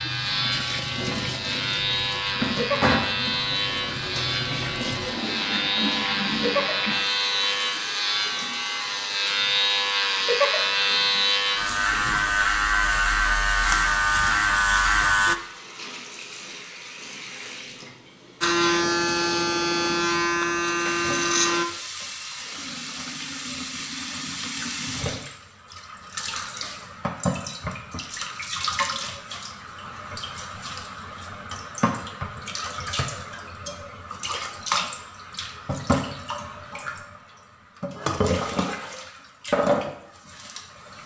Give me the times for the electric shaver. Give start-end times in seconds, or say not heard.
0.0-15.3, 18.4-21.6.